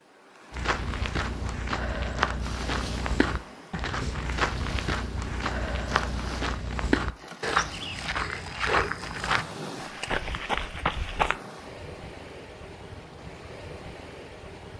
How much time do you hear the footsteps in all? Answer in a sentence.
The footsteps can be heard for 11 seconds in total.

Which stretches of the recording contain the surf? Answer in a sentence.
The surf can be heard from 0.0 to 14.7 s.